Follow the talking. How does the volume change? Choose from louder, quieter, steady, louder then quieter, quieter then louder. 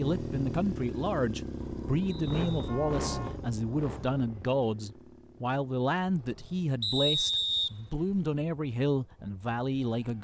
steady.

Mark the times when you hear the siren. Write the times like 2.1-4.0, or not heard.
not heard.